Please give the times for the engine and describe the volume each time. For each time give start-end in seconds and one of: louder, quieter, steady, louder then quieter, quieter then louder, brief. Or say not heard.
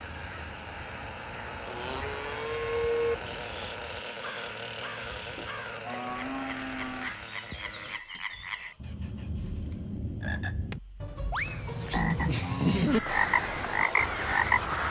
0.0-12.3 quieter.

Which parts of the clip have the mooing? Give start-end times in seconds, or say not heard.
1.6-3.1, 5.3-7.1, 11.4-12.9.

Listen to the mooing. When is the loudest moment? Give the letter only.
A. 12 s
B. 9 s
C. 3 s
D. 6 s
C.